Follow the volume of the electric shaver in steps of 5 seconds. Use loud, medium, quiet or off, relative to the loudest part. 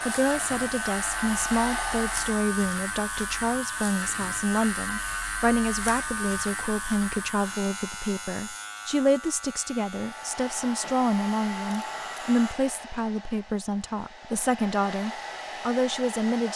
loud, loud, medium, off.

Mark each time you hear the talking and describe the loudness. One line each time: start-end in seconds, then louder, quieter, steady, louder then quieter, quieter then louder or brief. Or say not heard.
0.0-16.5 steady.